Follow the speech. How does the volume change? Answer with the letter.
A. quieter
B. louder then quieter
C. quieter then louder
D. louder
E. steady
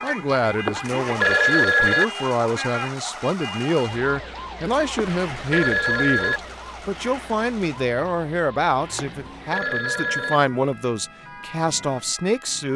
E.